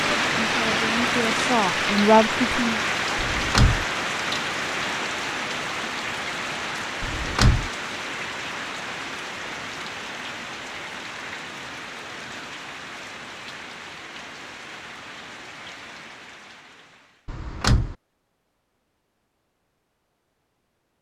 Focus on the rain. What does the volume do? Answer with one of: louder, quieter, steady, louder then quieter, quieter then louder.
quieter.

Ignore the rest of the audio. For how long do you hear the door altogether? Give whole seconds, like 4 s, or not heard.
2 s.